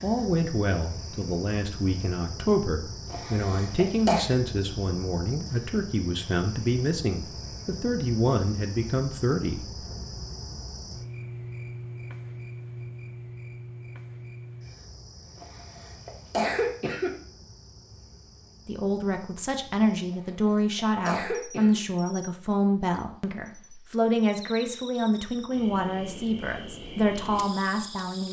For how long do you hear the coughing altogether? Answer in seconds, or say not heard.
4 s.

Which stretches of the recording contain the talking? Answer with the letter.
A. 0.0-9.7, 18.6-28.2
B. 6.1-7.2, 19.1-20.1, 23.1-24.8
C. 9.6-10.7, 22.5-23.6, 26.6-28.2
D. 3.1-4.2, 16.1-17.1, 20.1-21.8
A.